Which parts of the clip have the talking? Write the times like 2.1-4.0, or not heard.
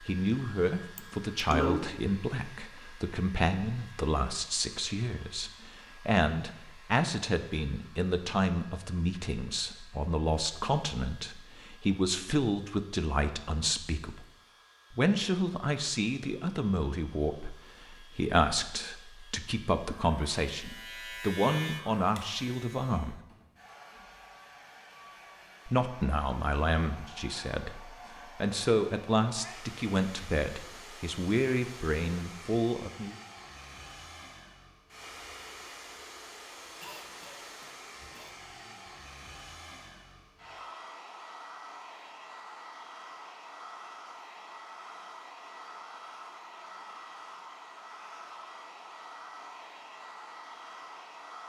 0.0-14.2, 14.9-23.2, 25.6-33.1.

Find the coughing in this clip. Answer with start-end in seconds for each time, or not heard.
0.9-1.9, 36.8-38.4.